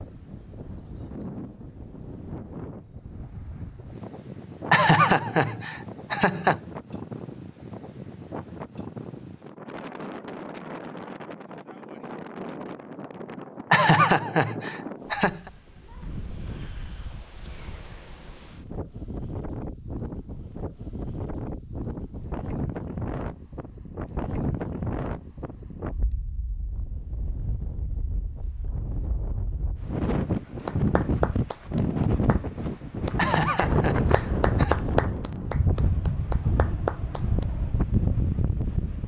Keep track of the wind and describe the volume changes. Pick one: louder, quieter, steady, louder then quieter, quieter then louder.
louder.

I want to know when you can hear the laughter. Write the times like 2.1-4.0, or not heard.
4.7-6.6, 13.7-15.5, 33.1-34.8.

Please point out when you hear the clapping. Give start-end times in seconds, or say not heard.
30.6-37.5.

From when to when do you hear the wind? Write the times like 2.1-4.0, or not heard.
0.0-39.0.